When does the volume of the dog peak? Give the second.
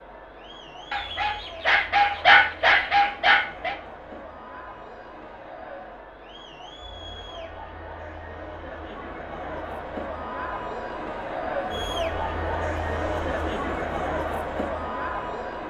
2 s.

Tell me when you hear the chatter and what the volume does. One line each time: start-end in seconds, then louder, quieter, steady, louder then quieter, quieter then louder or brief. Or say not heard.
0.0-15.6 louder.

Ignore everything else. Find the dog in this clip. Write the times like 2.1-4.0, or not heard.
0.9-3.8.